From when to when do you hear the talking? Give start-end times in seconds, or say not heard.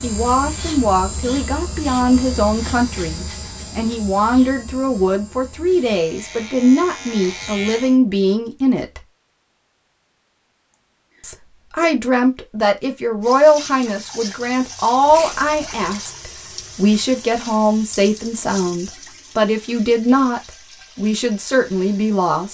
0.0-9.1, 11.2-22.4.